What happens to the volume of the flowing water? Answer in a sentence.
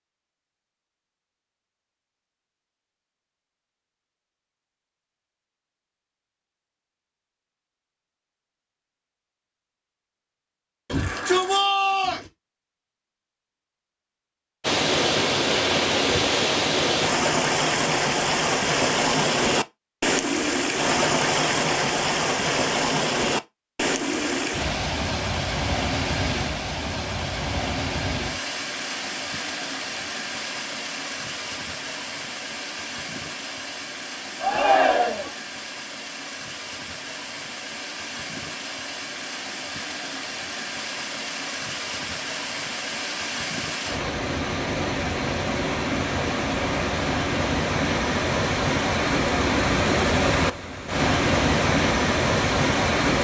The volume of the flowing water goes down, then up.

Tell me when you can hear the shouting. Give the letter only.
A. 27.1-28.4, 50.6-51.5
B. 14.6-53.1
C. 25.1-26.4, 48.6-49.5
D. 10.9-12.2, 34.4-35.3
D.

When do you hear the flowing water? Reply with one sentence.
The flowing water can be heard from 14.6 to 53.1 s.